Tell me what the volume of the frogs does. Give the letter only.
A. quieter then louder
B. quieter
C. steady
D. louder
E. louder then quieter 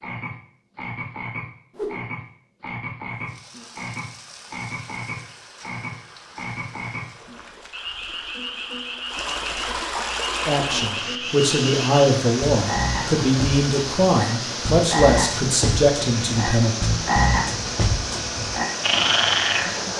D.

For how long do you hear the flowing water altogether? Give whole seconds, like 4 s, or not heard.
17 s.